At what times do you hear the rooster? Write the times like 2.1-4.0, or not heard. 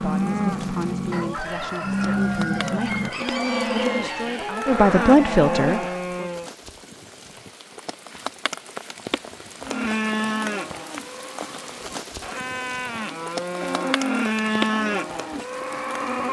1.1-6.1.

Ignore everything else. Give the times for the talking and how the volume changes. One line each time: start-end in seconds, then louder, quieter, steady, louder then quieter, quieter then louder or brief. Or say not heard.
0.0-6.2 louder.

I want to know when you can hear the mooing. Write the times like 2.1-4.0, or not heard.
0.0-6.5, 9.6-16.2.